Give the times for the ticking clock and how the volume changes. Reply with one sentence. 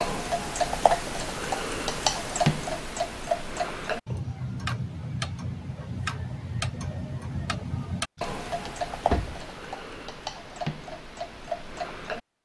You can hear the ticking clock from 0.0 to 12.2 s, getting quieter.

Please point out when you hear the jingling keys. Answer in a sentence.
You can hear the jingling keys from 8.2 to 9.4 s.